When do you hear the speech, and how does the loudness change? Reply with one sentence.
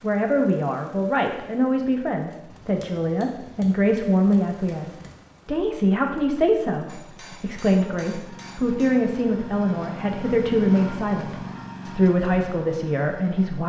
You can hear the speech from 0.0 to 13.6 s, at a steady volume.